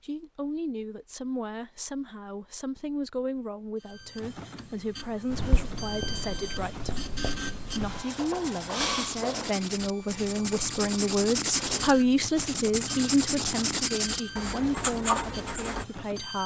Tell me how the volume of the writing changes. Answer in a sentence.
The loudness of the writing goes up.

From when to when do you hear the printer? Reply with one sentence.
The printer can be heard from 3.8 to 16.4 s.